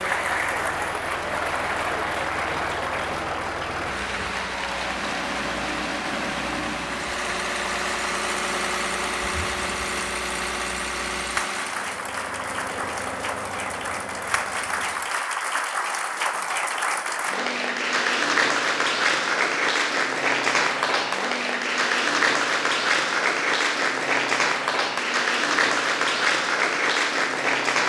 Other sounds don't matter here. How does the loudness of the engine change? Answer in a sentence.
The loudness of the engine goes up, then down.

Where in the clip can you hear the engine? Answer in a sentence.
You can hear the engine from 0.0 to 15.2 s.